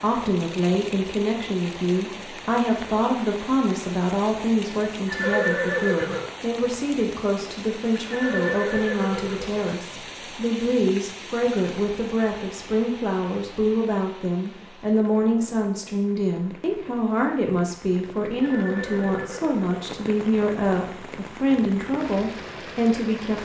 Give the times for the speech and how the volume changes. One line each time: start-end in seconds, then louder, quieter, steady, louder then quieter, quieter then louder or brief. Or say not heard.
0.0-23.4 steady.